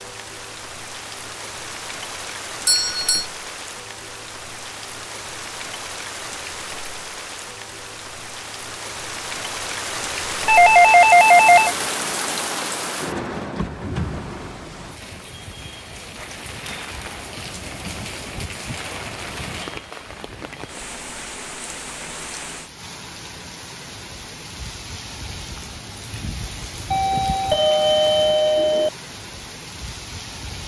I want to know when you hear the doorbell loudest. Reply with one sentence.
The loudest moment of the doorbell is at 11 seconds.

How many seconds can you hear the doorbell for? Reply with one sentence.
The doorbell can be heard for 4 seconds in total.